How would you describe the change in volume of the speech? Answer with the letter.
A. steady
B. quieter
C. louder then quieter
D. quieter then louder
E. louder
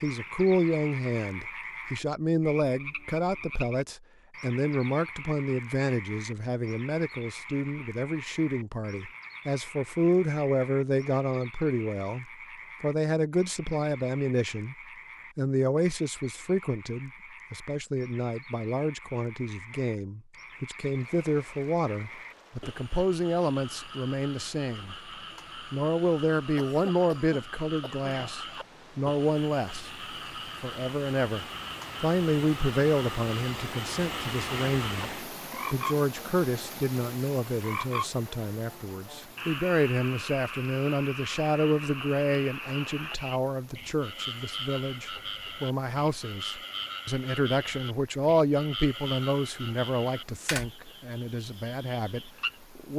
A.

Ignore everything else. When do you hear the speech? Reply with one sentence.
You can hear the speech from 0.0 to 14.8 s, from 15.3 to 24.9 s, from 25.7 to 29.9 s and from 30.6 to 52.9 s.